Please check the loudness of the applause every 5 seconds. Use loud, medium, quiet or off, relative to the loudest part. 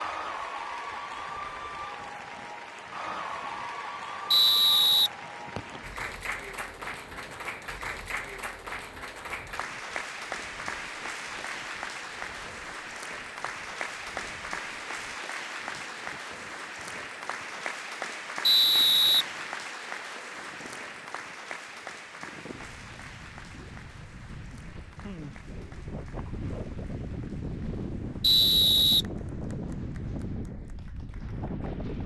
loud, loud, loud, loud, medium, quiet, quiet.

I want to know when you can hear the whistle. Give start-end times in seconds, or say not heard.
4.3-5.8, 18.4-19.2, 28.2-29.1.